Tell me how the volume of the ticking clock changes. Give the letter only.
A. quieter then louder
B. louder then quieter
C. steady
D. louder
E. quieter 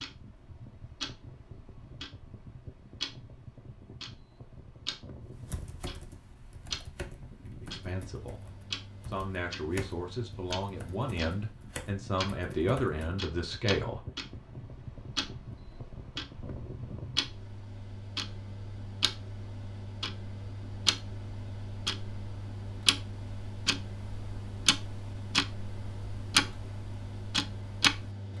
D.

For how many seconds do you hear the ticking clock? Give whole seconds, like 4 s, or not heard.
28 s.